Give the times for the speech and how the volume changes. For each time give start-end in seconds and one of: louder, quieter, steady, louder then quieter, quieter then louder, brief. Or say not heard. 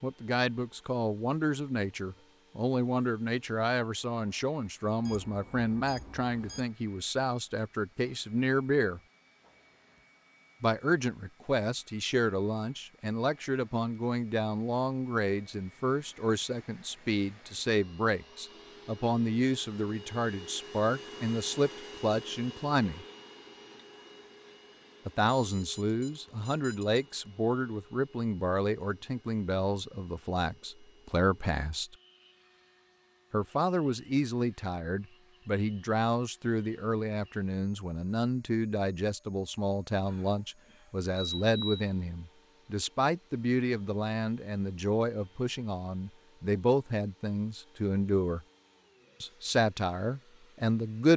0.0-9.0 steady
10.6-23.1 steady
25.1-31.9 steady
33.3-48.4 steady
49.2-51.1 brief.